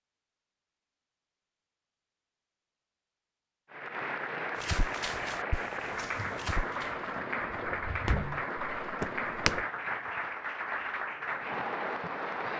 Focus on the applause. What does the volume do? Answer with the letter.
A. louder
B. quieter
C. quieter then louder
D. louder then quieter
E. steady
E.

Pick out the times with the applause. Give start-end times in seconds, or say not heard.
3.7-12.5.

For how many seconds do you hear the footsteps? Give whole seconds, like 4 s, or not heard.
5 s.